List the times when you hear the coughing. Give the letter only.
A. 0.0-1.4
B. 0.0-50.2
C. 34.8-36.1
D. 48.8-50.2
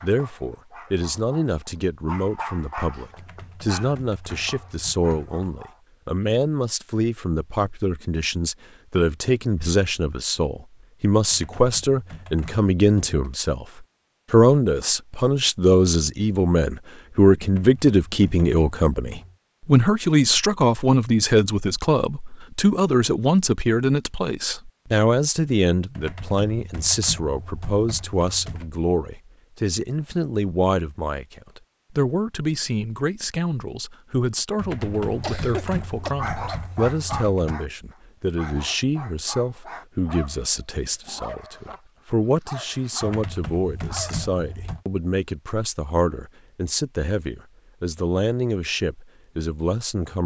C.